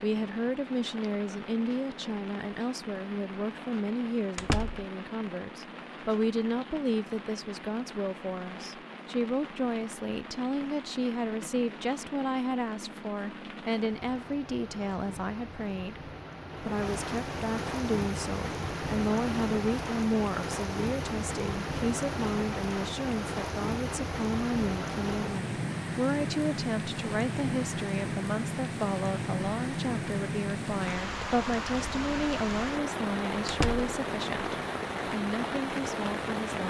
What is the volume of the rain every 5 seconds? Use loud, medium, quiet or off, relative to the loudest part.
medium, medium, medium, loud, loud, loud, loud, loud.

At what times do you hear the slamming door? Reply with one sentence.
The slamming door can be heard from 4.3 to 4.8 s and from 33.5 to 33.9 s.